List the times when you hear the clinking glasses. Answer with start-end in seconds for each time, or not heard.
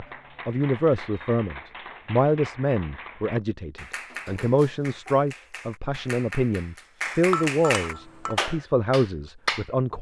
7.3-8.4.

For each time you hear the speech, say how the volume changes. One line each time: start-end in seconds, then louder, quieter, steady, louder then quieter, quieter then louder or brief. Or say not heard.
0.0-9.9 steady.